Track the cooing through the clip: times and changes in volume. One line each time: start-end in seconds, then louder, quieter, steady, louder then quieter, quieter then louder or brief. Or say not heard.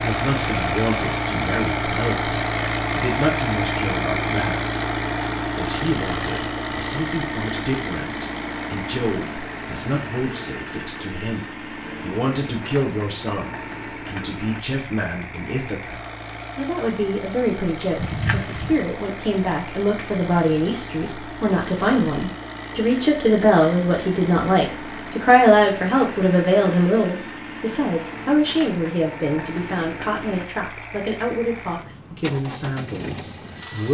not heard.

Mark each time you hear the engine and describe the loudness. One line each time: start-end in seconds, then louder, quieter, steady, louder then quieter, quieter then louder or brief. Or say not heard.
0.0-33.8 quieter.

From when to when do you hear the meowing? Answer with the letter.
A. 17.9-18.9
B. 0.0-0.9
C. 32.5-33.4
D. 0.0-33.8
A.